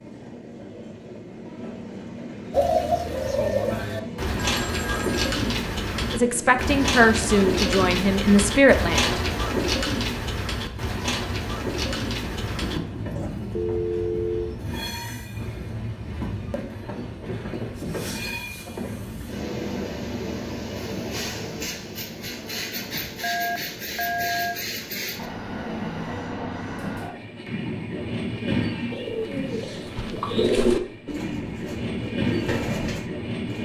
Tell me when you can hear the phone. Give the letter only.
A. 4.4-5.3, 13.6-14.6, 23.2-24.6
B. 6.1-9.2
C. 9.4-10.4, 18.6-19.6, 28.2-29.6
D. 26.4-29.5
A.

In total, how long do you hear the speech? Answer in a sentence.
You can hear the speech for 3 seconds altogether.